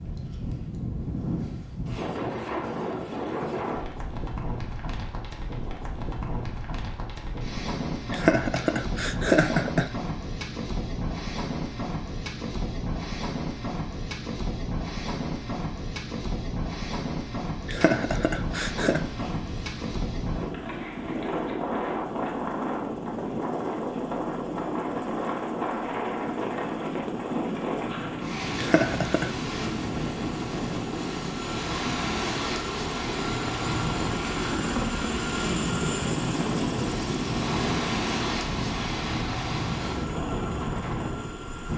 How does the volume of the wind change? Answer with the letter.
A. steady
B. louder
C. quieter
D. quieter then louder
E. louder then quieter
A.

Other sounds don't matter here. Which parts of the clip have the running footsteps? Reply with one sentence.
You can't hear the running footsteps here.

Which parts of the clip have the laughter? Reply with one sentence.
You can hear the laughter from 8.1 to 9.9 s, from 17.6 to 19.0 s and from 28.6 to 29.4 s.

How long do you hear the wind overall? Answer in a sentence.
The wind can be heard for 42 seconds in total.